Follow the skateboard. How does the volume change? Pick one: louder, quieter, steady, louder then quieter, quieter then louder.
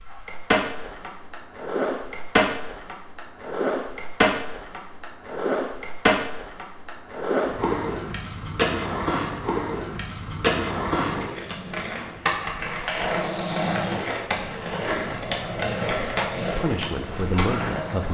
steady.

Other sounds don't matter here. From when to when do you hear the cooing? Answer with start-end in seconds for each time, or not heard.
not heard.